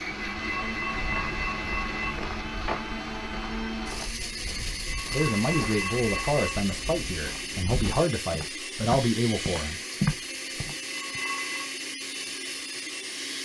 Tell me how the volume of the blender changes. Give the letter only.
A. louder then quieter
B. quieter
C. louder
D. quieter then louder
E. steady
E.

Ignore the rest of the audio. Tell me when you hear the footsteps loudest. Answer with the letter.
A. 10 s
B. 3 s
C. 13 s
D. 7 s
A.